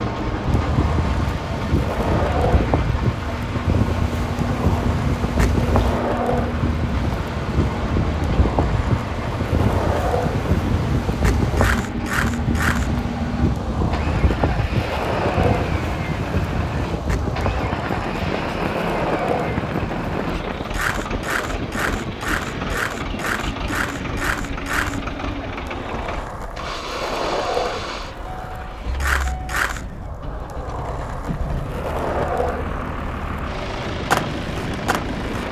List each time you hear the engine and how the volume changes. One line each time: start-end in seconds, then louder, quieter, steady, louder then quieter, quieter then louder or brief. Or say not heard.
0.0-35.4 steady.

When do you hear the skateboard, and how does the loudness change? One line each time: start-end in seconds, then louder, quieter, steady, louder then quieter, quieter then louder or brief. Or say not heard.
0.1-35.4 steady.